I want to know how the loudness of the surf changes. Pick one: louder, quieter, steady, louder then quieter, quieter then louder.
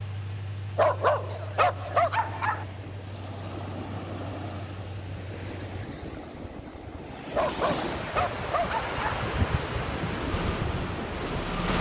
louder.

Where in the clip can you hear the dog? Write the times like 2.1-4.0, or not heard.
0.8-2.6, 7.3-9.2.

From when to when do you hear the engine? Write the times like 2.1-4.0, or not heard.
0.0-5.9, 10.2-11.7.